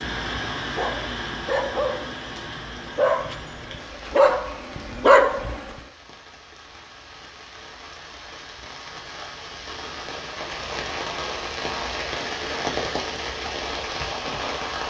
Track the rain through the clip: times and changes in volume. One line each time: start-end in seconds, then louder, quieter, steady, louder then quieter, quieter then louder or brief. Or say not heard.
0.0-14.8 quieter then louder.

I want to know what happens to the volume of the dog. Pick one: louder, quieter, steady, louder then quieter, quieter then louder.
quieter then louder.